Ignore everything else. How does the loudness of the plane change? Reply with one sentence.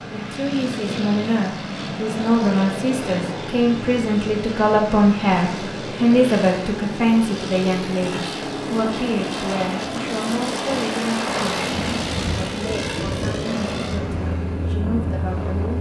The volume of the plane stays about the same.